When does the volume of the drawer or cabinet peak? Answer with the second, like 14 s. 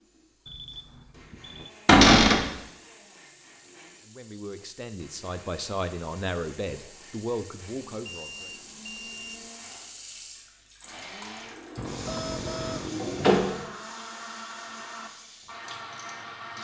2 s.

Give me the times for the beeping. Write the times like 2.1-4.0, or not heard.
0.5-1.7, 8.1-9.4, 11.8-12.9.